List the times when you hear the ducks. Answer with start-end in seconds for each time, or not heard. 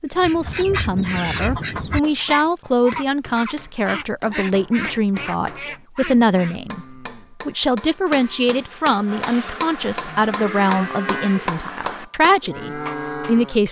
0.1-6.6.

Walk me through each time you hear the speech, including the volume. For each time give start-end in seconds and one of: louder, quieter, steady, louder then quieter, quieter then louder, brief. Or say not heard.
0.0-13.6 steady.